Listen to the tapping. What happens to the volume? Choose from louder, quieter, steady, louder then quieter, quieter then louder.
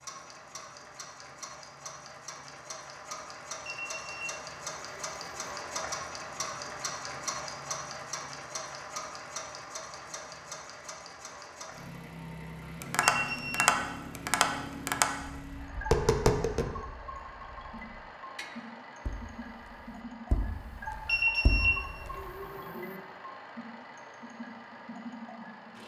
quieter.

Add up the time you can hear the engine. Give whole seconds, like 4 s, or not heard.
26 s.